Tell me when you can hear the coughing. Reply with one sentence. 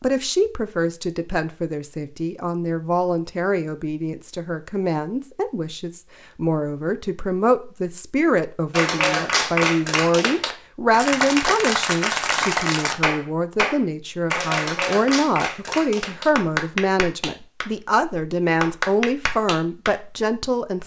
You can't hear the coughing here.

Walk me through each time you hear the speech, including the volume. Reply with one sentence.
The speech can be heard from 0.0 to 20.8 s, at a steady volume.